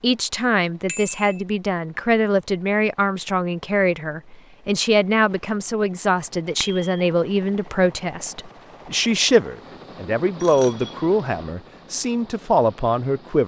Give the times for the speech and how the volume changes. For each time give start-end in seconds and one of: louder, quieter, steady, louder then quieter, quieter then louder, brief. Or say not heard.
0.0-13.4 steady.